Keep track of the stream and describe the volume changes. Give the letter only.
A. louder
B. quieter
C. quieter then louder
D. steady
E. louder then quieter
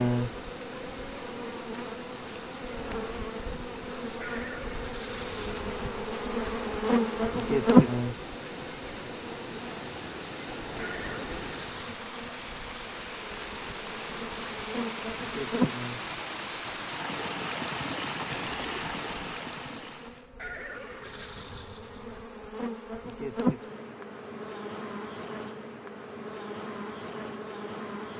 A.